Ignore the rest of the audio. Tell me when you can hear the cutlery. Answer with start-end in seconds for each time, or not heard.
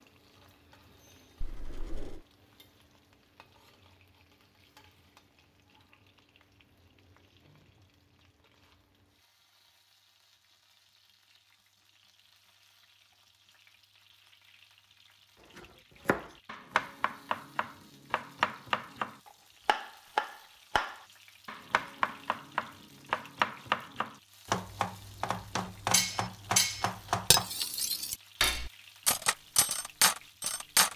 25.9-30.9.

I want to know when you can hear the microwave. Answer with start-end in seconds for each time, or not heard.
not heard.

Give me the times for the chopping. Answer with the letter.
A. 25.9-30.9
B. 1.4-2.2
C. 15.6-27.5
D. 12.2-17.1
C.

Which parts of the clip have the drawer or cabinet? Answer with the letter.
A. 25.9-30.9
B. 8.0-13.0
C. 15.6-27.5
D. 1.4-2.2
D.